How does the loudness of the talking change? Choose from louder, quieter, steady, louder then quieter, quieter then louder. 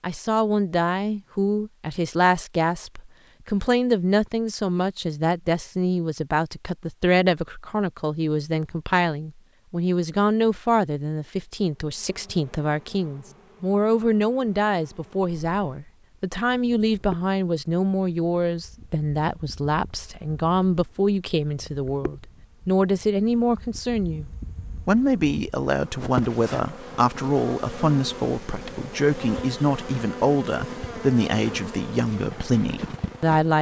steady.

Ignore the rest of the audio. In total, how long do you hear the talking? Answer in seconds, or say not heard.
33 s.